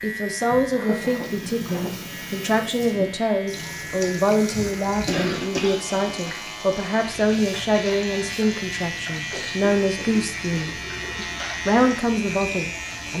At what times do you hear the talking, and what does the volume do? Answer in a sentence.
You can hear the talking from 0.0 to 13.1 s, at a steady volume.